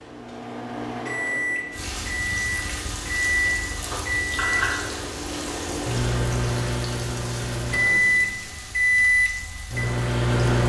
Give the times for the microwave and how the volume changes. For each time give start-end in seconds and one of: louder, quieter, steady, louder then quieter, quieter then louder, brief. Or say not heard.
0.0-10.6 louder.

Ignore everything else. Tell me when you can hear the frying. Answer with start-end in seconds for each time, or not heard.
1.7-10.6.